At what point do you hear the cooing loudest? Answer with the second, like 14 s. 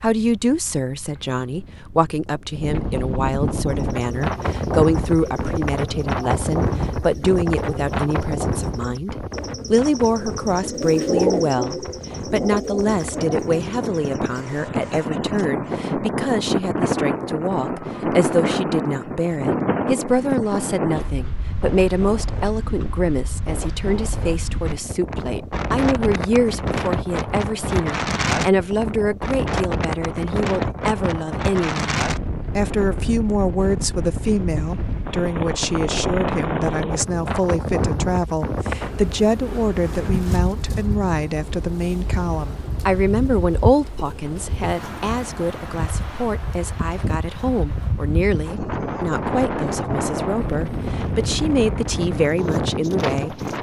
11 s.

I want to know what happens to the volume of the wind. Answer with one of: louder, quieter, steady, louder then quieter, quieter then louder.
steady.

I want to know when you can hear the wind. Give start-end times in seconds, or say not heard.
0.0-53.5.